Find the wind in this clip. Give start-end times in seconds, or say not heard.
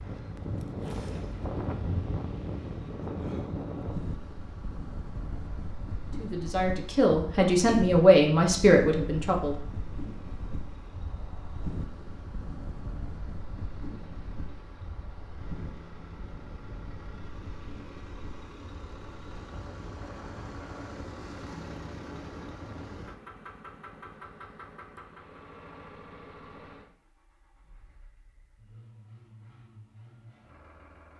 0.0-23.1.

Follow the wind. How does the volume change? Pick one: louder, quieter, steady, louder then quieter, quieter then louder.
quieter.